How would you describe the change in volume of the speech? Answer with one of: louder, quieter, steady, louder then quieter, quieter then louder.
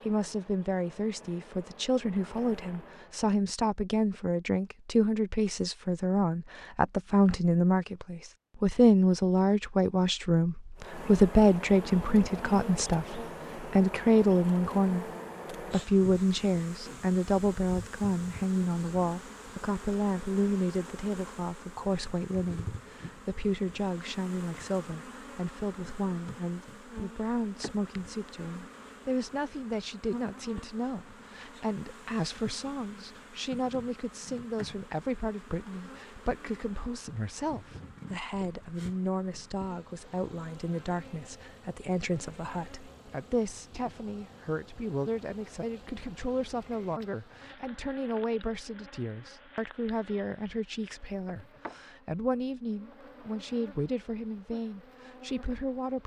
quieter.